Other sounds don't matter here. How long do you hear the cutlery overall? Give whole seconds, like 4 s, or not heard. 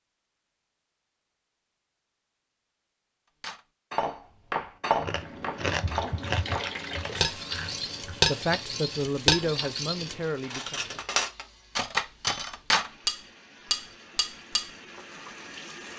11 s.